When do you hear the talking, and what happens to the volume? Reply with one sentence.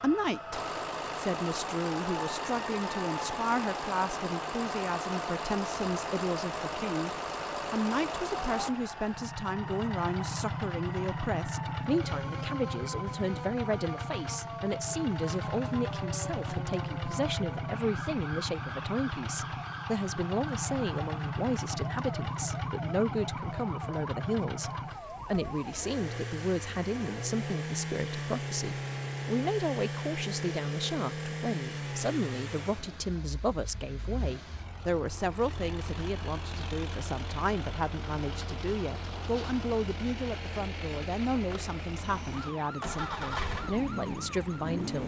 You can hear the talking from 0.0 to 45.0 s, at a steady volume.